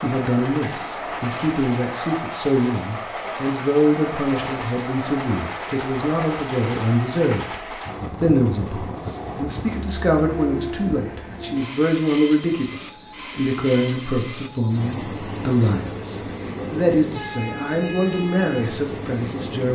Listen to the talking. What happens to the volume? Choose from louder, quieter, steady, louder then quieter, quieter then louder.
steady.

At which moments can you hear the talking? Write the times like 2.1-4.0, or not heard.
0.0-7.6, 8.2-19.7.